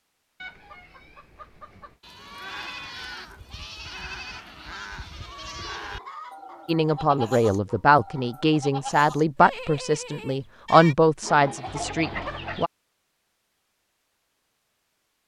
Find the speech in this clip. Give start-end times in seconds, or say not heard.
6.7-12.7.